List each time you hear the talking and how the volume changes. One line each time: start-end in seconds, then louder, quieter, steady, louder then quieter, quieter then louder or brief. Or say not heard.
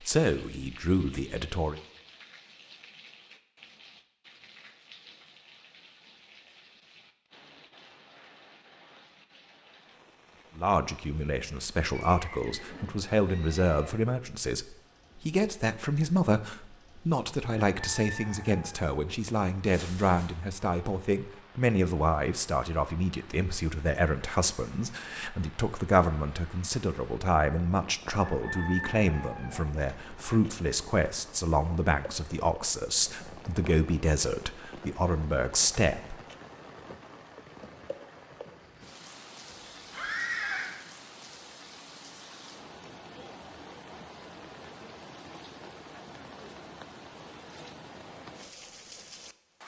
0.0-1.8 brief
10.6-36.1 steady.